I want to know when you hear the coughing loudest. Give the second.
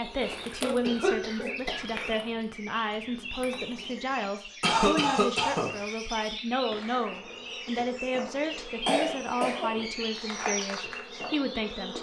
5 s.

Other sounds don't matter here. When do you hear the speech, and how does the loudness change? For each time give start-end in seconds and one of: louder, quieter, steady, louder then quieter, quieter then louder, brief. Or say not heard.
0.0-11.9 steady.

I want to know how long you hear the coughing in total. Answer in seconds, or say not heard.
4 s.